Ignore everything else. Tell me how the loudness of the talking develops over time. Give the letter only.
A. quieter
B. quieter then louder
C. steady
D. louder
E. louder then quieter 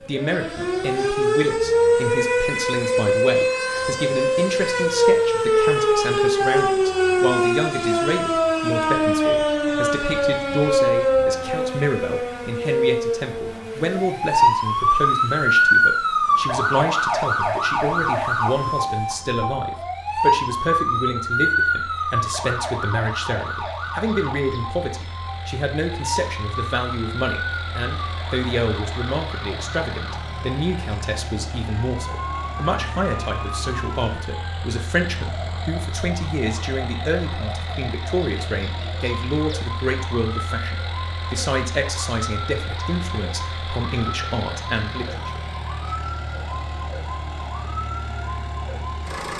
C.